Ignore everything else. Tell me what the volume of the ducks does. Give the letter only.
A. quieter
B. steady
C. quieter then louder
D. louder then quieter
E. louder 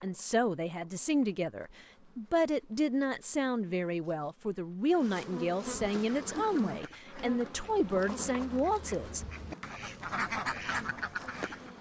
E.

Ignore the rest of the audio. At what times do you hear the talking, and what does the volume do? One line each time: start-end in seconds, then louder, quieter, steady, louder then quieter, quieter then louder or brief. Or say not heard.
0.0-9.2 steady.